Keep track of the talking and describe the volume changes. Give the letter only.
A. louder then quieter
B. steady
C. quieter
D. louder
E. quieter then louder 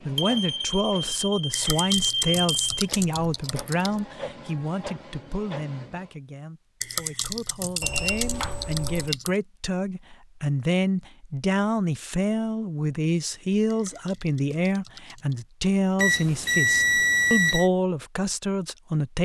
E.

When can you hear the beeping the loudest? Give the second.
17 s.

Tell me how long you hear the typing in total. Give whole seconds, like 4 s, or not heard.
7 s.